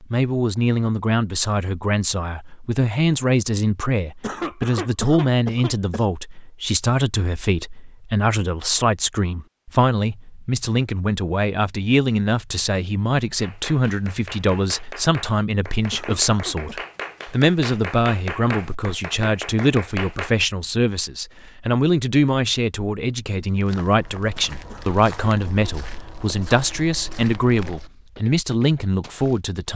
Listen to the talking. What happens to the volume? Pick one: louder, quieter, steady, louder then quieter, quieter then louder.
steady.